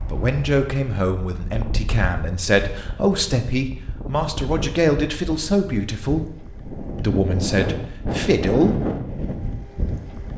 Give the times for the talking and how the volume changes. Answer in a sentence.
The talking can be heard from 0.1 to 8.8 s, at a steady volume.